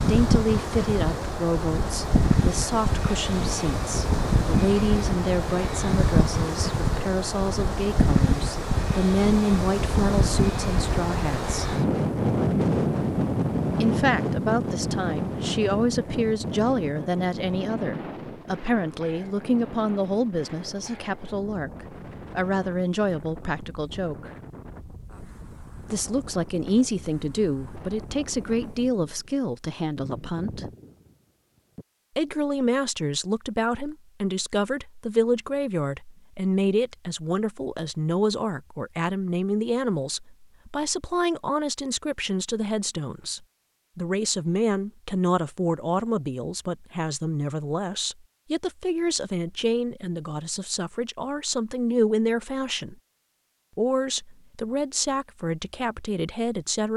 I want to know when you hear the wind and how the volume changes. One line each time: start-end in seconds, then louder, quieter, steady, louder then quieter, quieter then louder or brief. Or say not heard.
0.0-31.9 quieter.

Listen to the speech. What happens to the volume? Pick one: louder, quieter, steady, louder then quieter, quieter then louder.
steady.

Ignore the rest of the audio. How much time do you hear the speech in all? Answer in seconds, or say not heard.
51 s.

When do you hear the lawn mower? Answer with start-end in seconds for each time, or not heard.
not heard.